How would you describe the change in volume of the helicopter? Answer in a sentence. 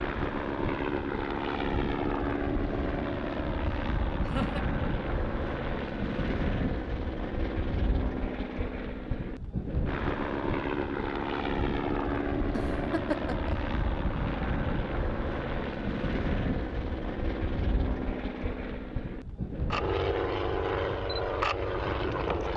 The loudness of the helicopter stays about the same.